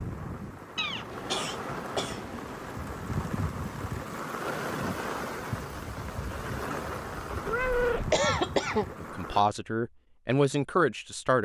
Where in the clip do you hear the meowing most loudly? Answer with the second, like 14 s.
8 s.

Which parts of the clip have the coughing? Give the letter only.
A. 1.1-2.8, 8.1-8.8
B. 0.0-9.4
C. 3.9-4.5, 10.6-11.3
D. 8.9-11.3
A.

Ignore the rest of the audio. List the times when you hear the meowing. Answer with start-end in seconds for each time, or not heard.
0.8-1.4, 7.5-8.2.